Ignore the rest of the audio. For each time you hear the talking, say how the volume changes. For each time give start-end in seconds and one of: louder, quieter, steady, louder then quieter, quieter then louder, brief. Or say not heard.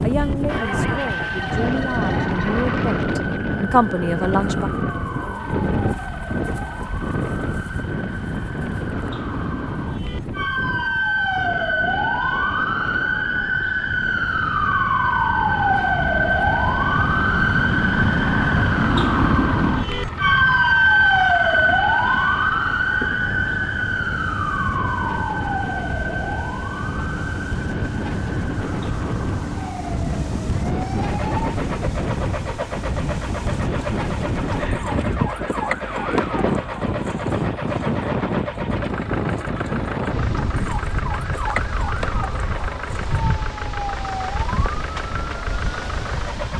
0.0-4.7 quieter then louder.